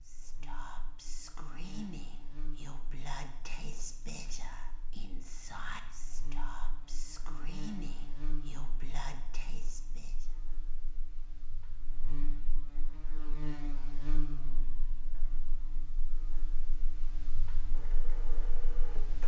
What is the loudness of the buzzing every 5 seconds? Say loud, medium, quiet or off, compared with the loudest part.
medium, loud, loud, medium.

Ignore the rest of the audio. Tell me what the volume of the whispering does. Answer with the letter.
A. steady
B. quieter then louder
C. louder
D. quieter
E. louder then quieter
A.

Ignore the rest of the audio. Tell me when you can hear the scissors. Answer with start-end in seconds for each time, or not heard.
not heard.